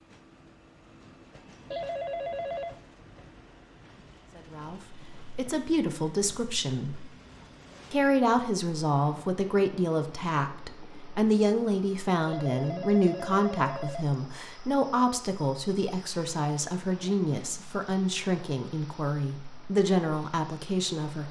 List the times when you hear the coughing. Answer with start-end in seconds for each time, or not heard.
not heard.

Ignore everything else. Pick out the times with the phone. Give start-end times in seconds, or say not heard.
1.7-2.8, 12.2-14.1.